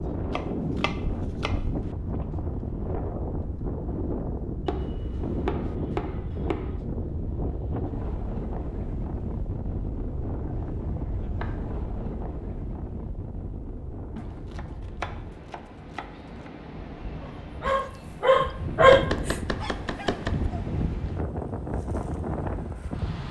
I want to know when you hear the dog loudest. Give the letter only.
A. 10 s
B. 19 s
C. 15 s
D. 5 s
B.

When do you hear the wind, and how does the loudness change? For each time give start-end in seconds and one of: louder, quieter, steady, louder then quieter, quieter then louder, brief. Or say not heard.
0.0-23.2 quieter then louder.